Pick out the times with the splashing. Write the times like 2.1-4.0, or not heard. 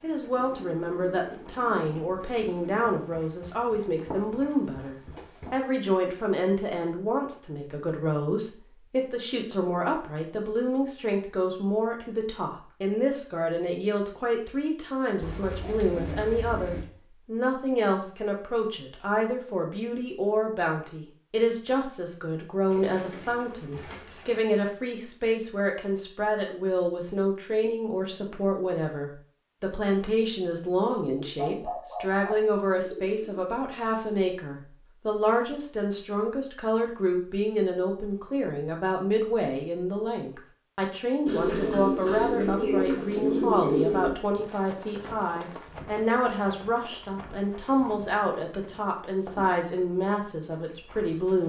not heard.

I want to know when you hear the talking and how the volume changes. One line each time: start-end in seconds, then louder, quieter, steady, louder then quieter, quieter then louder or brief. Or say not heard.
0.0-51.4 steady.